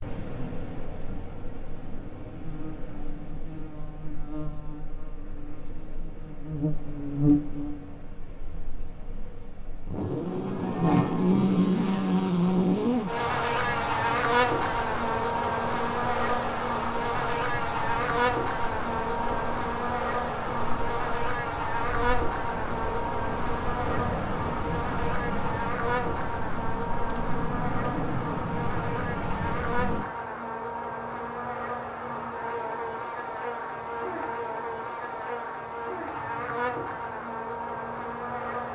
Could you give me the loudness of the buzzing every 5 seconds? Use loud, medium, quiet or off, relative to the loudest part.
quiet, medium, loud, loud, medium, medium, medium, medium.